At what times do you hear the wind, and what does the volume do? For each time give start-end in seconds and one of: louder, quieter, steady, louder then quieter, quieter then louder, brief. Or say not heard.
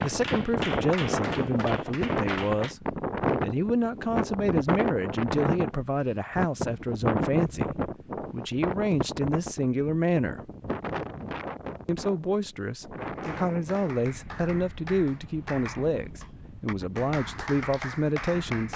0.0-18.7 quieter.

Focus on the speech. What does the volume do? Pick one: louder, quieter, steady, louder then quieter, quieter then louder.
steady.